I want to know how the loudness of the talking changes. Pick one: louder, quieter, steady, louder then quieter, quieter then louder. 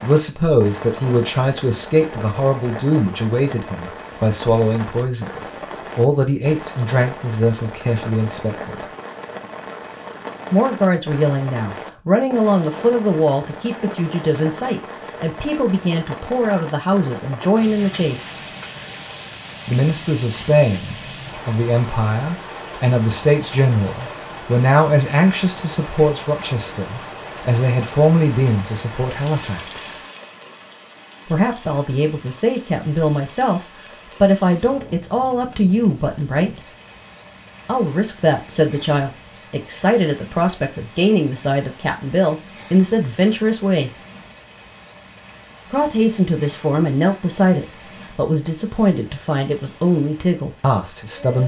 steady.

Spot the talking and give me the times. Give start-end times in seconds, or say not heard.
0.0-8.8, 10.5-18.4, 19.6-29.9, 31.2-36.7, 37.6-43.9, 45.7-51.4.